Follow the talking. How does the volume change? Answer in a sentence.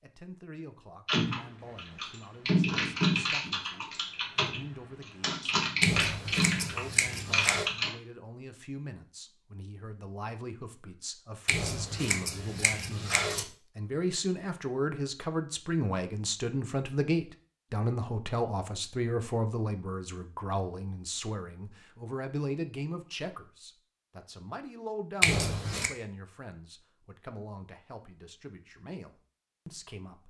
The volume of the talking goes up, then down.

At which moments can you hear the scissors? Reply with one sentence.
The scissors can be heard from 5.8 to 7.7 s, from 11.4 to 13.4 s and from 25.2 to 25.9 s.